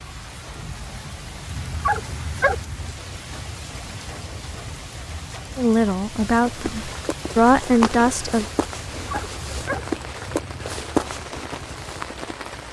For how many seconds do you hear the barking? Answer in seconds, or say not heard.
3 s.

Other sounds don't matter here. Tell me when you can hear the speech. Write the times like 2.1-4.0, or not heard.
5.5-8.4.